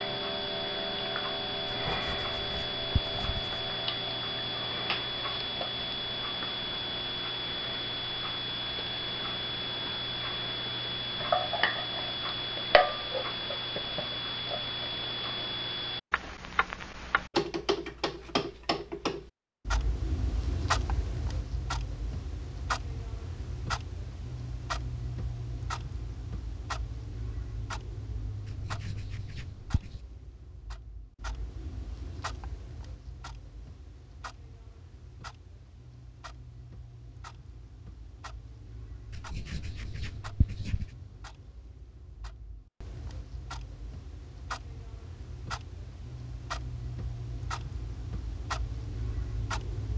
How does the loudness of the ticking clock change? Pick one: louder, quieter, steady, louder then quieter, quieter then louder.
quieter then louder.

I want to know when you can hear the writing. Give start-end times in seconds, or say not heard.
1.6-3.7, 28.4-30.0, 39.1-40.9.